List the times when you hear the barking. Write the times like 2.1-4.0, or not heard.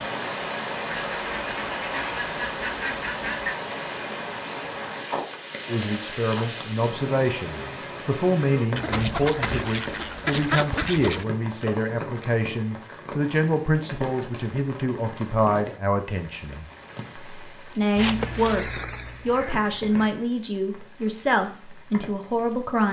not heard.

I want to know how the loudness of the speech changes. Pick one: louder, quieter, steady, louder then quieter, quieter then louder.
steady.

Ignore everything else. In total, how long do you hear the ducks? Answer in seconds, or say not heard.
7 s.